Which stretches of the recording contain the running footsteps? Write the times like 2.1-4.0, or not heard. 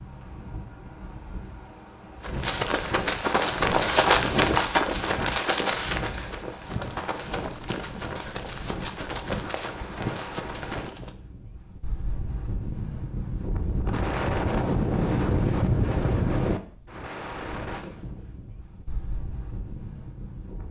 2.2-11.1.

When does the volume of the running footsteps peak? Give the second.
4 s.